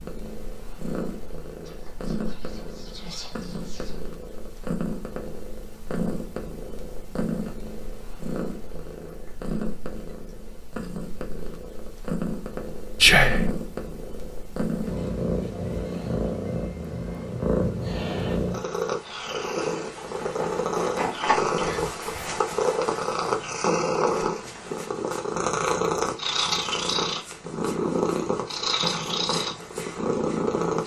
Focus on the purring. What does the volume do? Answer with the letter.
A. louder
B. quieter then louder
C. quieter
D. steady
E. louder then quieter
A.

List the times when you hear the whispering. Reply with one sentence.
You can hear the whispering from 1.6 to 4.0 s, from 12.9 to 13.5 s and from 21.5 to 22.4 s.